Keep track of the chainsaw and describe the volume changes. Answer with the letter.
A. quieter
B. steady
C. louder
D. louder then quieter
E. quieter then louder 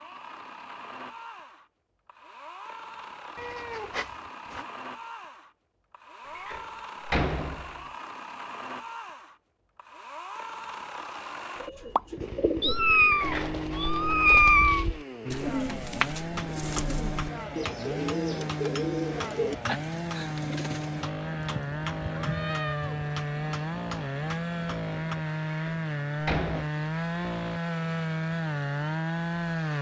C.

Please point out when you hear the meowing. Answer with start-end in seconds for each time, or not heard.
3.4-4.7, 12.6-14.8, 21.4-23.1.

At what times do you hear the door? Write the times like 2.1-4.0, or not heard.
6.3-7.8, 13.1-13.6, 25.5-26.7.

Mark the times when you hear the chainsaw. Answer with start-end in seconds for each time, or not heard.
0.0-29.7.